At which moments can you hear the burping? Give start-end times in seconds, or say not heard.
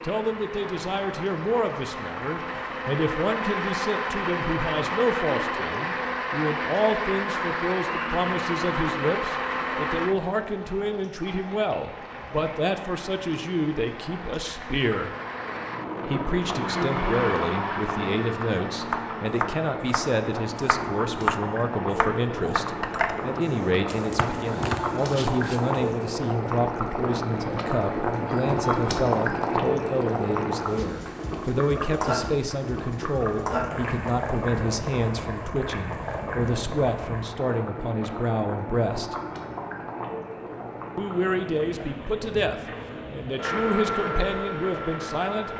not heard.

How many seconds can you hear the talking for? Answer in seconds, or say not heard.
43 s.